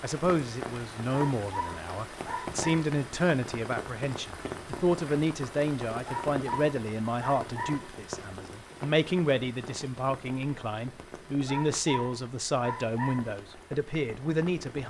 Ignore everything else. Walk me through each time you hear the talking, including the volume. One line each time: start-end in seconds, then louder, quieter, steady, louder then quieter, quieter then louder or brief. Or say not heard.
0.0-14.8 steady.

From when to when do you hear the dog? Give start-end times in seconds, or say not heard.
1.1-2.9, 6.0-7.9, 11.4-13.3.